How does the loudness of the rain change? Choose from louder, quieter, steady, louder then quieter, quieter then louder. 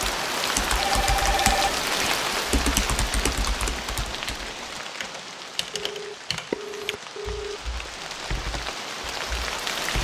quieter then louder.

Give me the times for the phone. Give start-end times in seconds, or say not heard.
0.8-1.8, 5.7-7.6.